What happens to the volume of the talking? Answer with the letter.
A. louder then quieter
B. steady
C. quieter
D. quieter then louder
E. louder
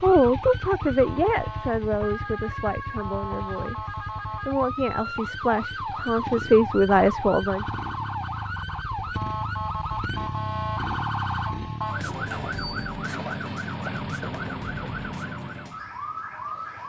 D.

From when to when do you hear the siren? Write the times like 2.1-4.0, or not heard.
0.0-16.8.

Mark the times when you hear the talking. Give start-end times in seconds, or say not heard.
0.0-7.7.